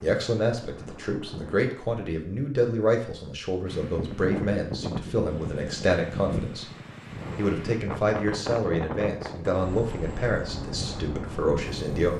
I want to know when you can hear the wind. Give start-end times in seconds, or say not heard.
3.6-12.1.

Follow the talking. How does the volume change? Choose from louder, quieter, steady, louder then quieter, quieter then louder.
steady.